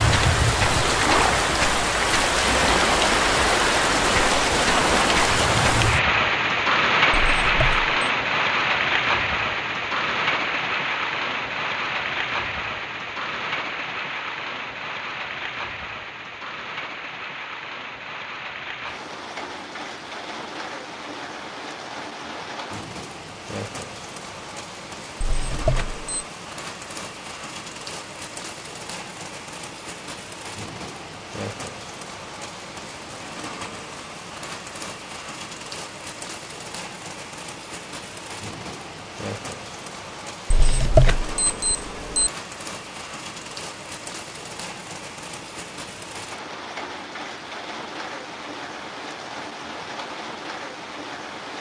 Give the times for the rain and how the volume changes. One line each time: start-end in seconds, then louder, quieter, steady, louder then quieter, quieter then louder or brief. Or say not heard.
0.0-51.5 quieter.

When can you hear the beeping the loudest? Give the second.
41 s.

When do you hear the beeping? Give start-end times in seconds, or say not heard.
7.2-7.9, 25.2-26.2, 40.5-42.3.